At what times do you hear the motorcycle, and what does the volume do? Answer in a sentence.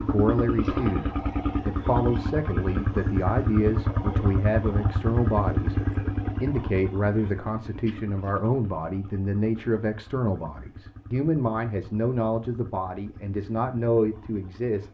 The motorcycle can be heard from 0.0 to 14.8 s, getting quieter.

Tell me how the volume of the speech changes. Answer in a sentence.
The volume of the speech stays about the same.